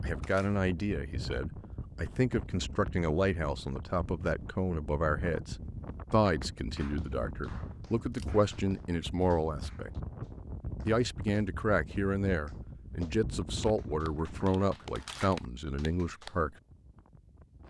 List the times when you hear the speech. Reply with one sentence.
The speech can be heard from 0.0 to 9.9 s and from 10.8 to 16.6 s.